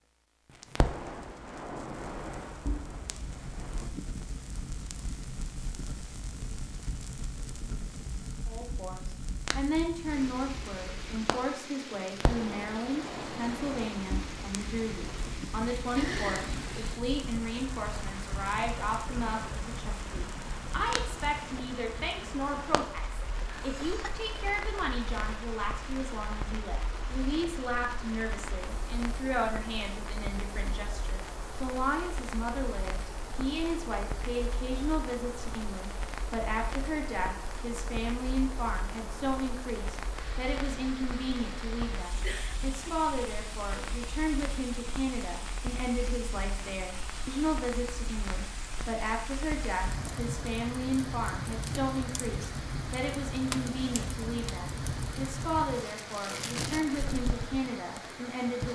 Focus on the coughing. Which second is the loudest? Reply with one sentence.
The loudest moment of the coughing is at 16 seconds.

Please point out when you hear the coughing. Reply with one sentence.
The coughing can be heard from 15.9 to 16.7 s, from 23.5 to 24.2 s and from 42.0 to 43.0 s.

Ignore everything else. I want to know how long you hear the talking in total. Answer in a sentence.
The talking can be heard for 50 seconds in total.